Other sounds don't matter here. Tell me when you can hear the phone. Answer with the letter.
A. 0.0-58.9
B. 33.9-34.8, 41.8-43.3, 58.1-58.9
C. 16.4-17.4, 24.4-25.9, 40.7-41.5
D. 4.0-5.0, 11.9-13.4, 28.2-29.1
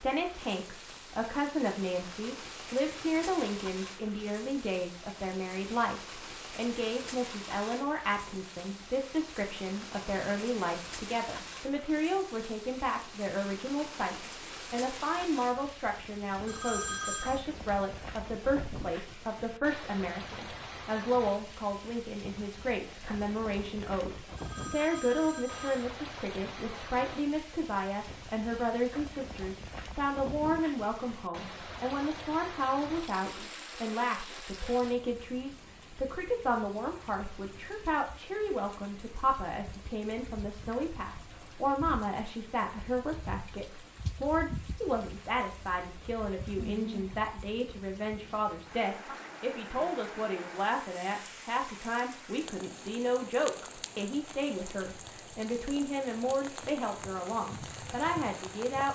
C.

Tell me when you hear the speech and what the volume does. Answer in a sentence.
The speech can be heard from 0.0 to 58.9 s, at a steady volume.